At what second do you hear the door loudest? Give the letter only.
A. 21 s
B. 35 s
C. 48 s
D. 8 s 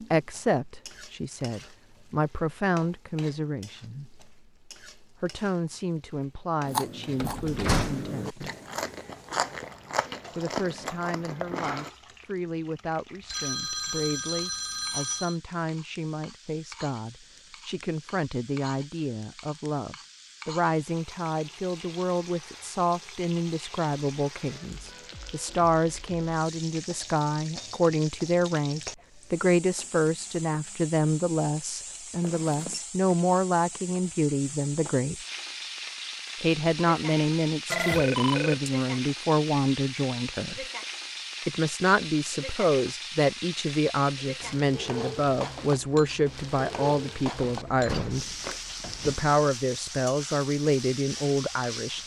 D.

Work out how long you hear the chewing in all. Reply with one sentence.
The chewing can be heard for 5 seconds in total.